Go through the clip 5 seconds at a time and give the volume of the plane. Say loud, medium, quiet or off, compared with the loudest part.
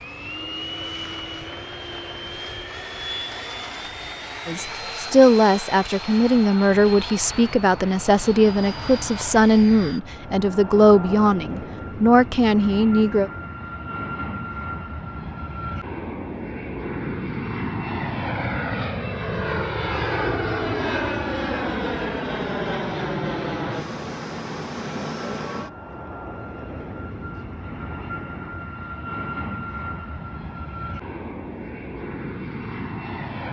medium, medium, medium, loud, loud, medium, medium.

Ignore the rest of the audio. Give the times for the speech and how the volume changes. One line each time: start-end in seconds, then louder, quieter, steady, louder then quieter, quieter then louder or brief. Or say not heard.
4.5-13.3 steady.